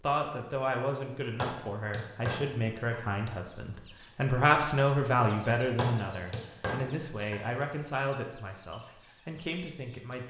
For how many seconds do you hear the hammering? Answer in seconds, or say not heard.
4 s.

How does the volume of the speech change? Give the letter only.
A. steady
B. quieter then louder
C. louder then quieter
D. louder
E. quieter
C.